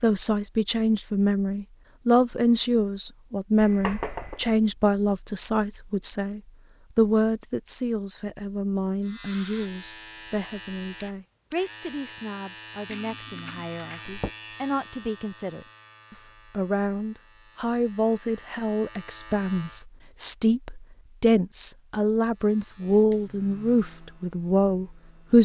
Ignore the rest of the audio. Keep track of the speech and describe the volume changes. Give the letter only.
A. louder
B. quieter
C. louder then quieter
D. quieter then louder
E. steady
D.